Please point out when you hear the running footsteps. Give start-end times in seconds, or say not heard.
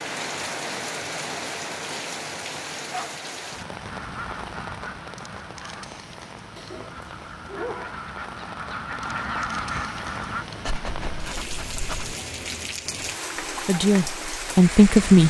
not heard.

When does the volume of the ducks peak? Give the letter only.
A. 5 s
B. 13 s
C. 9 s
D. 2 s
C.